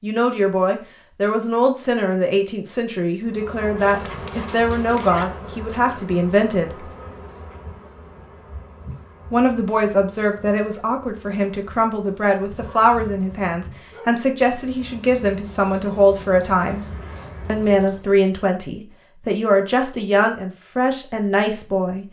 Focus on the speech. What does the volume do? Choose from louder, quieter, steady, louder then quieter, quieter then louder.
steady.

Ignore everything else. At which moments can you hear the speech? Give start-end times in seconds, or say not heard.
0.0-6.8, 9.3-16.8, 17.4-22.0.